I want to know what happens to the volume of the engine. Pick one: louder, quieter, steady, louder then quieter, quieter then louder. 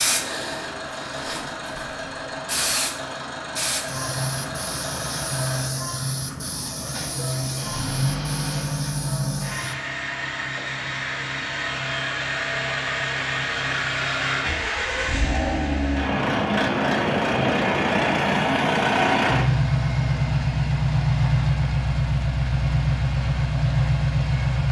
louder.